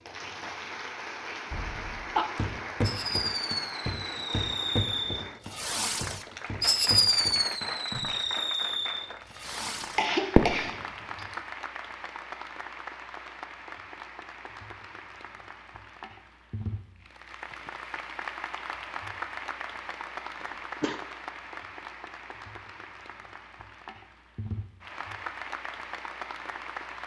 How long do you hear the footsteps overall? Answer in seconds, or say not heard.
6 s.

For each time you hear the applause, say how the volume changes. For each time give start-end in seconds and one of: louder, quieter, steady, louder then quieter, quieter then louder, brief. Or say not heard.
0.0-27.0 steady.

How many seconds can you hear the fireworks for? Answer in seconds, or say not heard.
8 s.